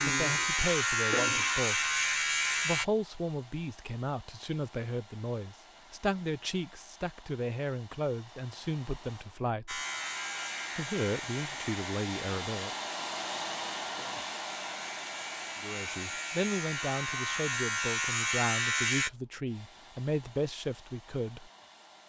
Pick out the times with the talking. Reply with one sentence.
You can hear the talking from 0.1 to 1.9 s, from 2.6 to 9.8 s, from 10.8 to 12.7 s and from 15.6 to 21.5 s.